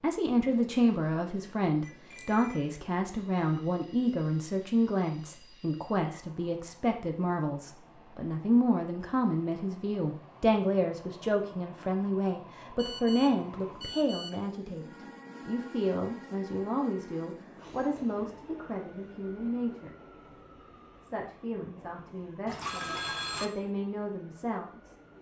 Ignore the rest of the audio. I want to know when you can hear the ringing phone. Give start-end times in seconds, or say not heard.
1.8-2.6, 12.8-14.4, 22.4-23.5.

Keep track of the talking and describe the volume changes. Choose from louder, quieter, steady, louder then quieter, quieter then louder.
quieter.